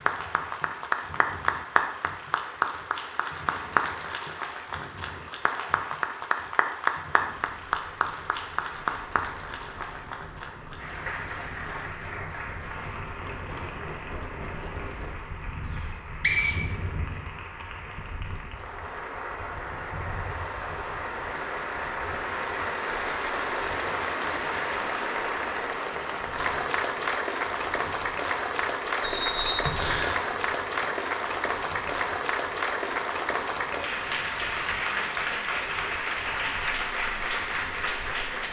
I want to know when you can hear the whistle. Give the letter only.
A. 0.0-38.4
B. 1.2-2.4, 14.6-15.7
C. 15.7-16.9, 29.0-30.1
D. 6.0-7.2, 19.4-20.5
C.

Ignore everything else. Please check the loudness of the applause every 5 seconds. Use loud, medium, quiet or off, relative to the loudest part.
loud, loud, medium, medium, loud, loud, loud, loud.